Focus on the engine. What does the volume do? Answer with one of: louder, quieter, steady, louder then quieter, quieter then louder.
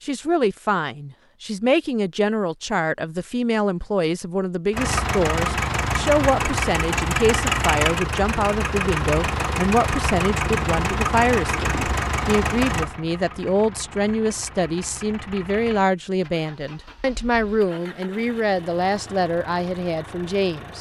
quieter.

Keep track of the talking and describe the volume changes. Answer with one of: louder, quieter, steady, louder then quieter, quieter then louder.
steady.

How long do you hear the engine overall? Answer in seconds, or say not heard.
16 s.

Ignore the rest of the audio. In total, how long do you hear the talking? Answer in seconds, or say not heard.
21 s.